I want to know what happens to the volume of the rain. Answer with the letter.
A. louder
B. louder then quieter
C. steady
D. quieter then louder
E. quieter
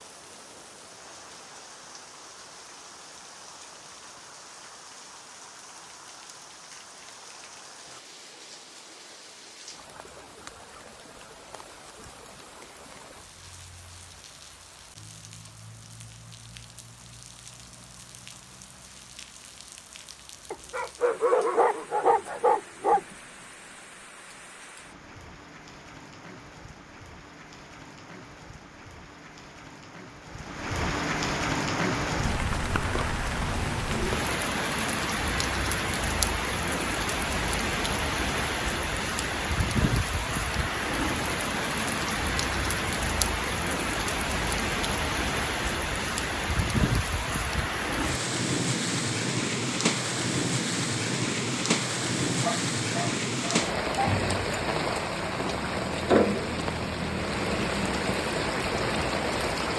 A.